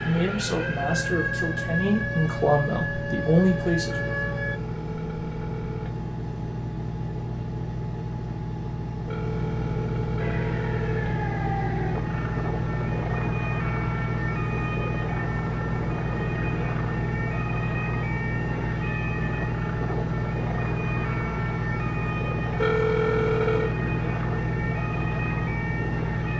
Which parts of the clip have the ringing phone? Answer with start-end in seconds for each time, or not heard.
3.9-6.0, 9.1-11.2, 22.6-23.8.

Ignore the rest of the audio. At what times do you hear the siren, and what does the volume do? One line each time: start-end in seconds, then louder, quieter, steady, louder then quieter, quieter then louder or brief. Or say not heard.
0.0-4.6 steady
10.2-26.3 steady.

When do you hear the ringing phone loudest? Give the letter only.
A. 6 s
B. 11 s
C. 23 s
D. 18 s
C.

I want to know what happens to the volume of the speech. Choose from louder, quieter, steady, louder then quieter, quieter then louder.
louder.